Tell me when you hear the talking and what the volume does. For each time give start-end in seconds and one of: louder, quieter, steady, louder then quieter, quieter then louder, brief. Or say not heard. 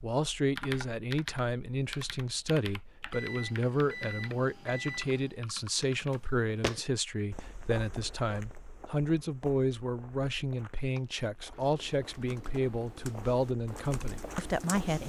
0.0-15.0 steady.